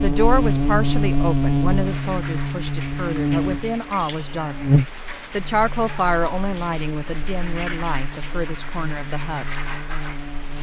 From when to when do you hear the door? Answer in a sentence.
You can't hear the door here.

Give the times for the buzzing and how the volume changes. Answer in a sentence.
The buzzing can be heard from 0.0 to 10.5 s, getting quieter.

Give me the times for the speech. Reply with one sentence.
The speech can be heard from 0.0 to 9.6 s.